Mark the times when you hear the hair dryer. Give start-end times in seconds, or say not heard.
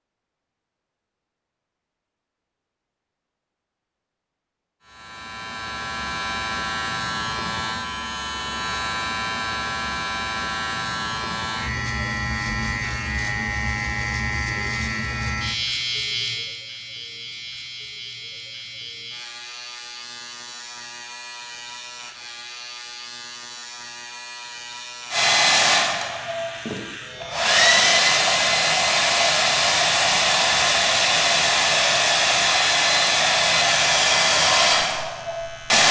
25.1-35.8.